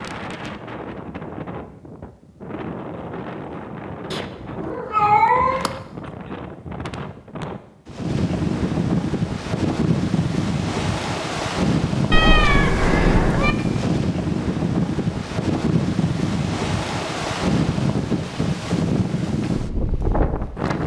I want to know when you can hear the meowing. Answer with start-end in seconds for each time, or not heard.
4.1-5.7, 12.1-13.6.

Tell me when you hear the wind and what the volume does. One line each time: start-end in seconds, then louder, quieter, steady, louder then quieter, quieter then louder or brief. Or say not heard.
0.0-20.8 louder.